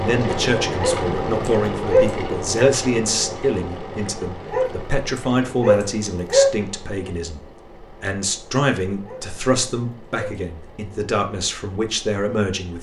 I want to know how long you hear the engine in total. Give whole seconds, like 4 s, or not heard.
13 s.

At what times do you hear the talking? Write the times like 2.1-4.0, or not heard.
0.0-7.4, 8.0-12.7.